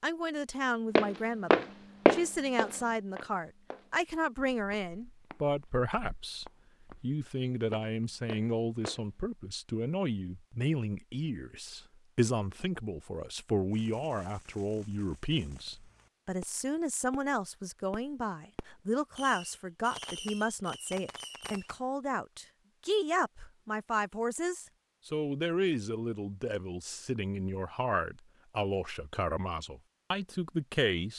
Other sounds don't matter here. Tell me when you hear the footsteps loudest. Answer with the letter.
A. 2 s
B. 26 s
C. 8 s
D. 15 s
A.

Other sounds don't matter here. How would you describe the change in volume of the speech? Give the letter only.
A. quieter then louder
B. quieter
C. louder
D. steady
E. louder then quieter
D.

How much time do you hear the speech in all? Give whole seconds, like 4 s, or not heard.
31 s.